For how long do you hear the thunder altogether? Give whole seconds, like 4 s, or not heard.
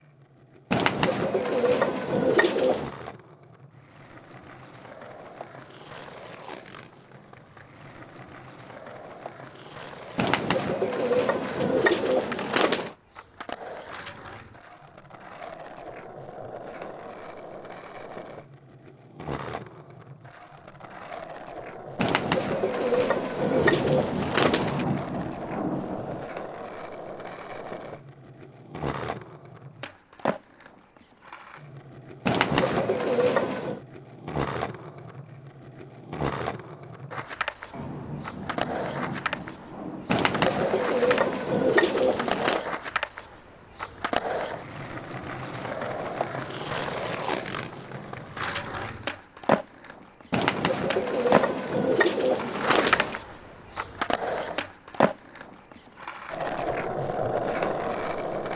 5 s.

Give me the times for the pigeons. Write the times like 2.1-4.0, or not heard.
0.7-2.9, 10.2-12.9, 21.9-24.9, 32.2-33.8, 40.0-42.6, 50.3-53.2.